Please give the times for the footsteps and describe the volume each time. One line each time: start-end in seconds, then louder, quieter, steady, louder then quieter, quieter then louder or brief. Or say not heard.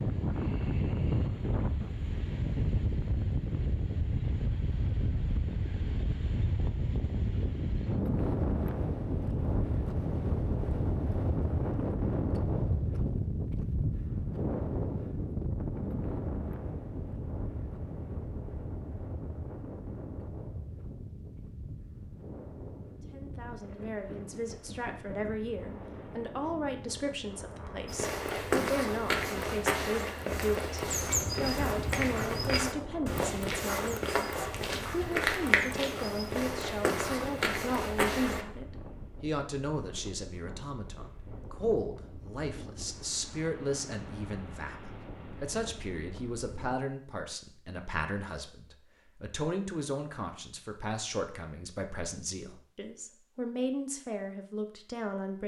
27.9-38.5 steady.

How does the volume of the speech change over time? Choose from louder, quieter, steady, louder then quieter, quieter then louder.
steady.